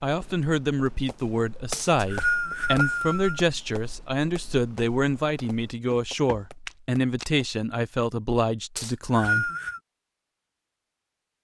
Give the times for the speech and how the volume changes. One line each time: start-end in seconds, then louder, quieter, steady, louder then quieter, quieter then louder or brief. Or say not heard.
0.0-9.5 steady.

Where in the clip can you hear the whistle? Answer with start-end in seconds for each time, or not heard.
1.7-3.4, 8.8-9.8.